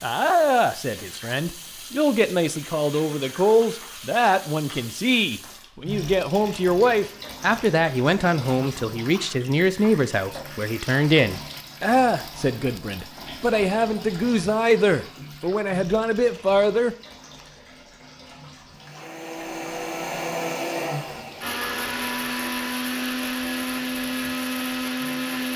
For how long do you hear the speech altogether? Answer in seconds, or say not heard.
17 s.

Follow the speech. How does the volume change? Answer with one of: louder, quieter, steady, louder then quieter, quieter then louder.
steady.